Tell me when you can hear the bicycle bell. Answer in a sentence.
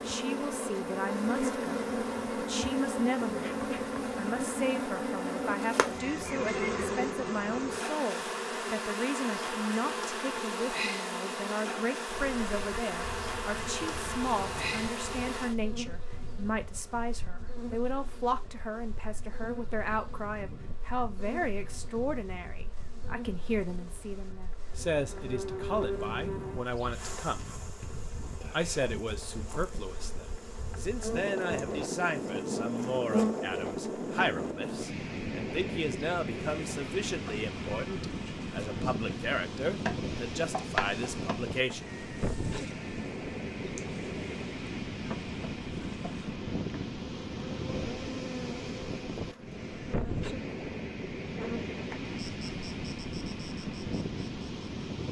You can't hear the bicycle bell here.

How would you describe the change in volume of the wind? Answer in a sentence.
The volume of the wind goes up.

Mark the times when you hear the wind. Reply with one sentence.
The wind can be heard from 12.1 to 55.0 s.